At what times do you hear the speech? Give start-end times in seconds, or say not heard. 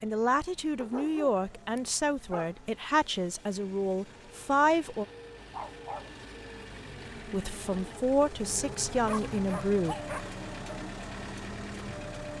0.0-5.0, 7.2-9.9.